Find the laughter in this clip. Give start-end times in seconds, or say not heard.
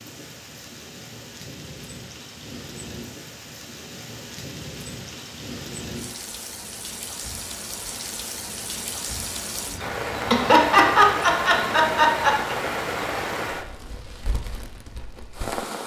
10.2-12.6.